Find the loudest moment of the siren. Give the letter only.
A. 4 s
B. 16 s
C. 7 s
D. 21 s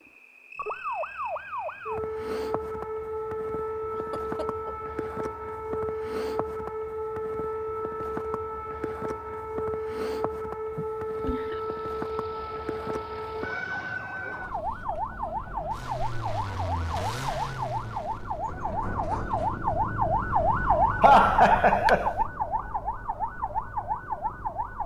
D.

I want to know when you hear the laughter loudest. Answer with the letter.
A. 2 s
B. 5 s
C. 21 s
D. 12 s
C.